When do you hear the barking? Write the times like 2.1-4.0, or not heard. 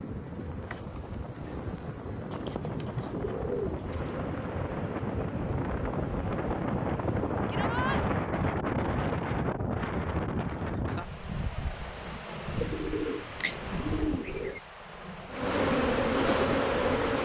not heard.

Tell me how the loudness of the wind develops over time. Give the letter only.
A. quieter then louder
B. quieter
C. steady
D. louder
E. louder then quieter
E.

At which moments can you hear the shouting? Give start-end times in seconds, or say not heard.
7.5-8.0.